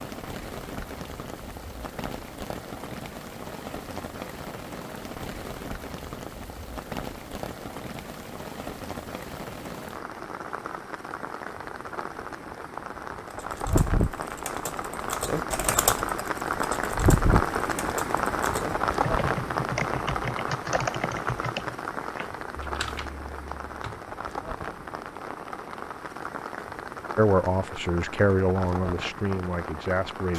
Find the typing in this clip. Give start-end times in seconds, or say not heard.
13.3-24.1.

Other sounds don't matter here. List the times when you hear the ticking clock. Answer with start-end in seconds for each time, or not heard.
not heard.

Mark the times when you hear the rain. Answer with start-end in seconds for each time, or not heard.
0.0-30.3.